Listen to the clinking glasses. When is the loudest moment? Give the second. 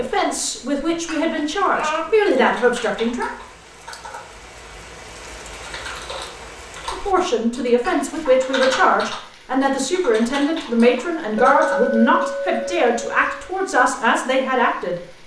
12 s.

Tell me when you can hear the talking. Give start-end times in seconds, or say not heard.
0.0-3.3, 6.9-15.2.